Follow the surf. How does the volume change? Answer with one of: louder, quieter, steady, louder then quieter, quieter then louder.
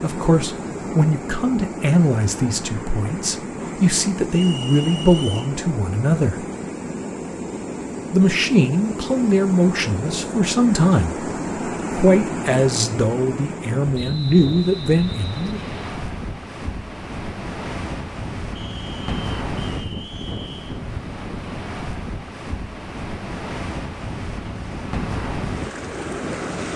steady.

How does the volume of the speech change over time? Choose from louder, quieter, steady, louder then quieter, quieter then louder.
steady.